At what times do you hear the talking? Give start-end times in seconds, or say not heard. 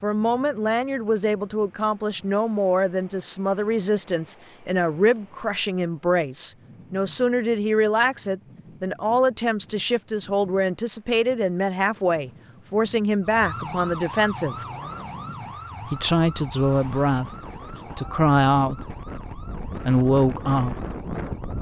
0.0-14.7, 15.8-17.3, 17.9-18.9, 19.8-20.9.